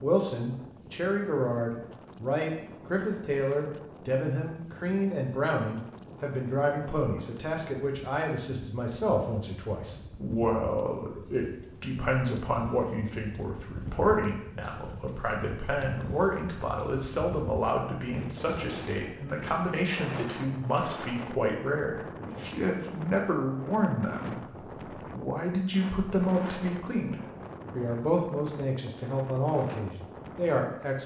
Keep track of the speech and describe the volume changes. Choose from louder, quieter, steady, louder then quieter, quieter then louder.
steady.